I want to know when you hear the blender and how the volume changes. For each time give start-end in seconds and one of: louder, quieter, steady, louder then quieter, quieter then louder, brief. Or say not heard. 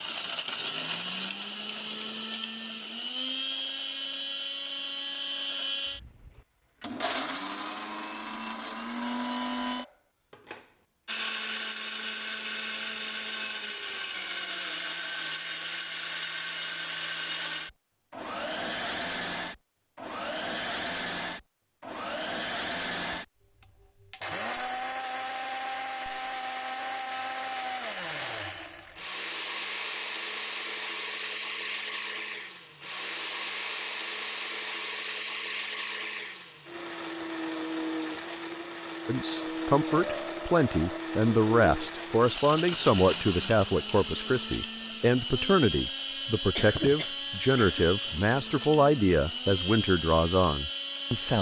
0.0-51.3 steady.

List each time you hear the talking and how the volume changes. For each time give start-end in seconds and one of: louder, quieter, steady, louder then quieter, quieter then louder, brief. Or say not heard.
39.0-51.3 steady.